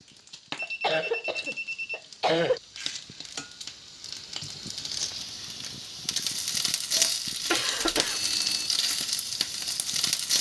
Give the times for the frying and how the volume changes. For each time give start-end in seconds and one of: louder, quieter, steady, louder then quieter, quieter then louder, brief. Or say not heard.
0.0-10.3 louder.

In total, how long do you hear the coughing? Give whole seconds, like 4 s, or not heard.
3 s.